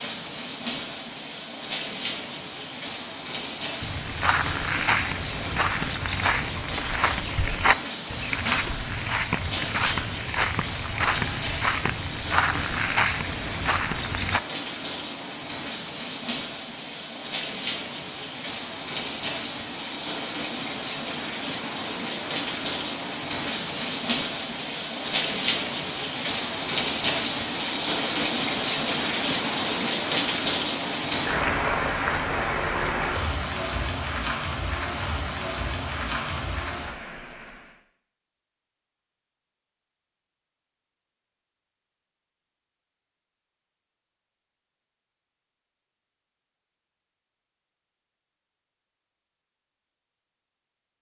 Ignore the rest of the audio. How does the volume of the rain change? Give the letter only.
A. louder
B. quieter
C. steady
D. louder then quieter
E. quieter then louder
A.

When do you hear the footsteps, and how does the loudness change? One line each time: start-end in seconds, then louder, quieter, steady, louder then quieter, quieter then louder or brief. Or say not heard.
3.8-14.4 steady.